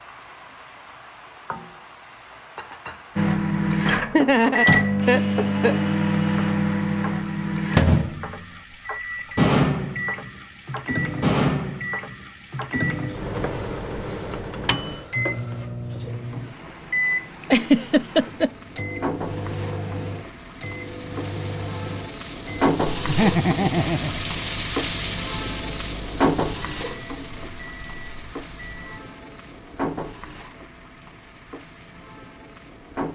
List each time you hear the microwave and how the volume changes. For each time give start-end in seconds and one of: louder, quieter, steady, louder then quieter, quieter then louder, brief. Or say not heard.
3.1-28.9 quieter.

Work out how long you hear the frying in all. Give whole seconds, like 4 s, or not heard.
33 s.